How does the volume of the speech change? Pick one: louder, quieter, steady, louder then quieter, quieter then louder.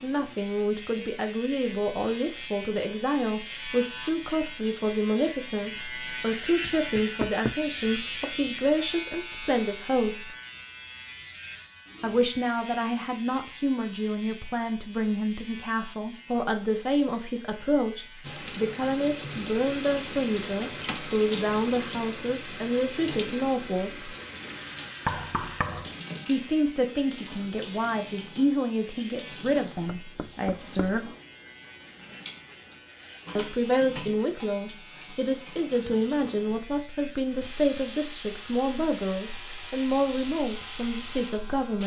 steady.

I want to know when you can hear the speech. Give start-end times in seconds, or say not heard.
0.0-10.3, 12.0-24.1, 26.2-31.1, 33.4-41.8.